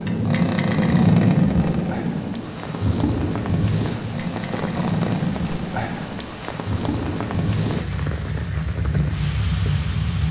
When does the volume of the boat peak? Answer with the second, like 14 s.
1 s.